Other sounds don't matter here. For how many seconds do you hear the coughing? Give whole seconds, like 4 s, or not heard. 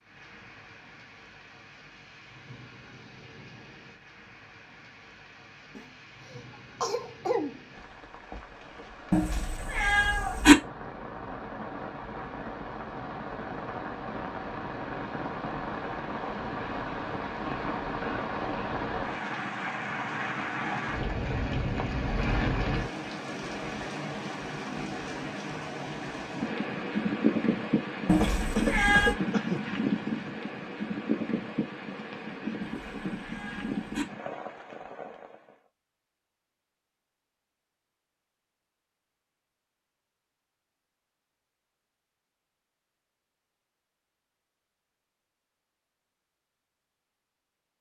3 s.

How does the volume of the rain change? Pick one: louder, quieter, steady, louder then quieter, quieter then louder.
louder.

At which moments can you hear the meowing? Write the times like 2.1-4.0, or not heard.
9.1-10.6, 28.1-29.1, 32.6-34.0.